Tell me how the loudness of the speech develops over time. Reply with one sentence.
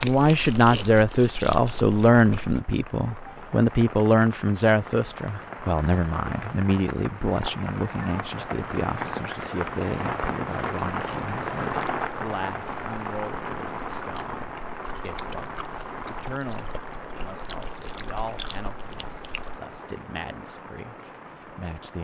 The volume of the speech goes down.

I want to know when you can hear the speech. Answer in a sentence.
The speech can be heard from 0.0 to 22.0 s.